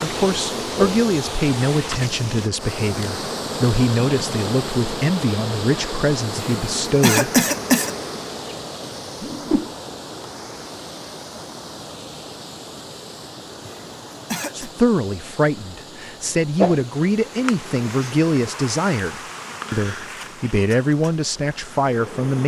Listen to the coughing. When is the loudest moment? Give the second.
7 s.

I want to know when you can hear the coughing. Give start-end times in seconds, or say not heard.
6.3-7.9, 13.6-14.7.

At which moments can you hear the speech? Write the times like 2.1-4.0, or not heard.
0.0-7.4, 14.6-22.4.